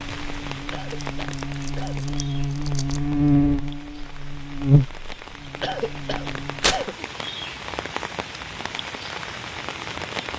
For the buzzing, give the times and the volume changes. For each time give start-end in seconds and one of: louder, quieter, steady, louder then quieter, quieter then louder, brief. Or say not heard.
0.0-7.0 louder then quieter.